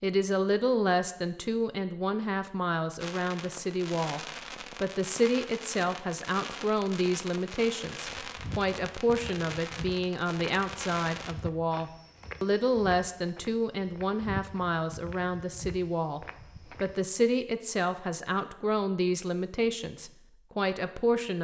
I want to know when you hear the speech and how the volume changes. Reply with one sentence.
You can hear the speech from 0.0 to 21.3 s, at a steady volume.